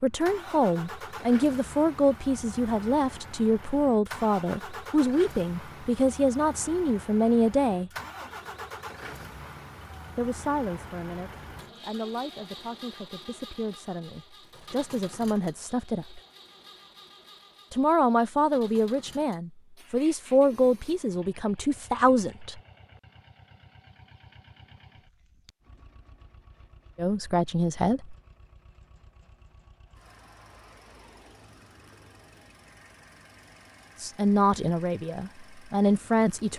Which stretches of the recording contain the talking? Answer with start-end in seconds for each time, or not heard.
0.0-7.9, 10.2-16.2, 17.7-22.6, 26.9-28.1, 34.0-36.5.